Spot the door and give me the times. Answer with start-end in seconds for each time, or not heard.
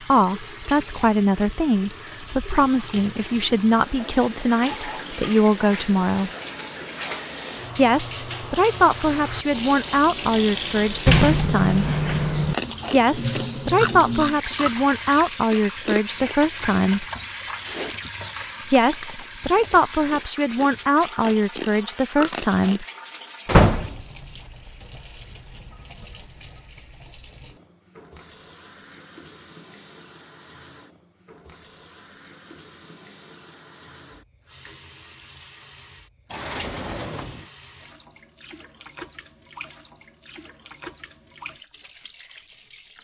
11.1-12.6, 23.4-24.0, 36.3-37.4.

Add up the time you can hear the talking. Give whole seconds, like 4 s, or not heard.
19 s.